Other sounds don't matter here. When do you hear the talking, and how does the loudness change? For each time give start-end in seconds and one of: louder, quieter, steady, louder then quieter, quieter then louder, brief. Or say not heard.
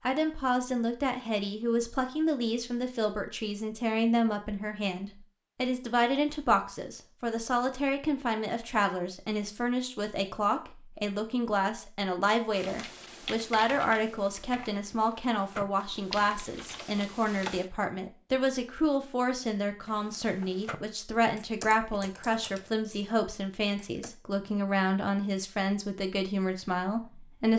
0.1-27.5 steady.